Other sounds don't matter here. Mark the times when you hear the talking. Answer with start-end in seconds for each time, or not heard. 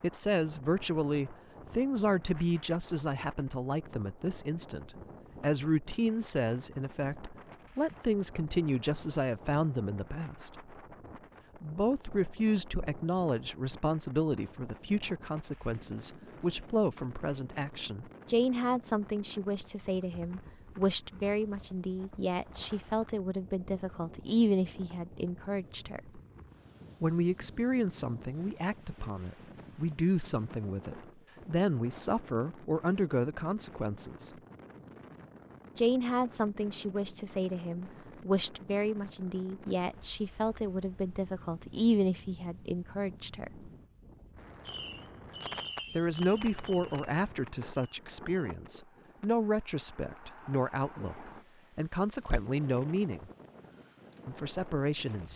0.0-10.6, 11.6-26.2, 27.0-34.3, 35.8-43.7, 46.0-53.3, 54.2-55.3.